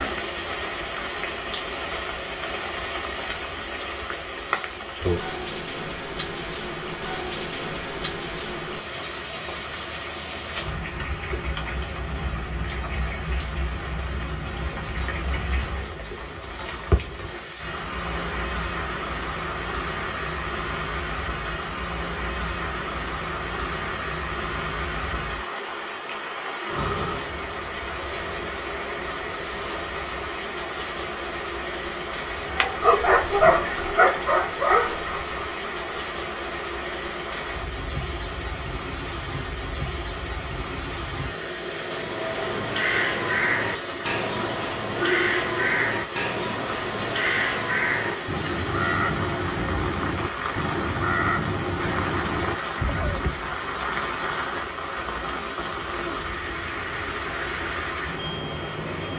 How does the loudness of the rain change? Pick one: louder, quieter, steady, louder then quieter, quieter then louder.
steady.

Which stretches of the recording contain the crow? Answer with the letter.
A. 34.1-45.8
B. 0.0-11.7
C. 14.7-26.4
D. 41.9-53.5
D.